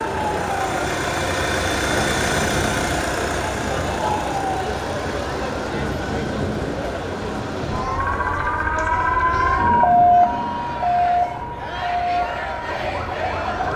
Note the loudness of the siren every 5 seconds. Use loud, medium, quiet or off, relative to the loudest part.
medium, loud, loud.